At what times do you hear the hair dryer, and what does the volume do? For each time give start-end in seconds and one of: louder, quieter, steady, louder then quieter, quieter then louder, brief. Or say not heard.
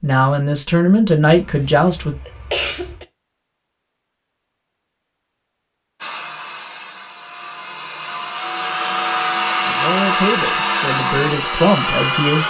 6.0-12.4 louder.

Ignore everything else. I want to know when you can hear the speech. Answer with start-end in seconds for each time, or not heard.
0.0-2.1, 9.7-12.4.